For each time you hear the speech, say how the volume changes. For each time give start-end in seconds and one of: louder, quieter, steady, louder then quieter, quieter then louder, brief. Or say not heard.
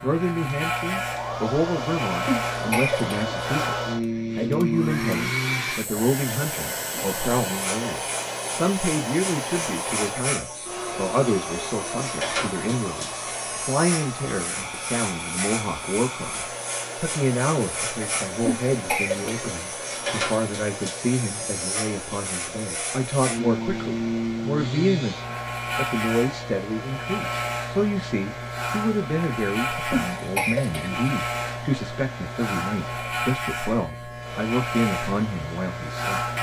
0.0-36.2 steady.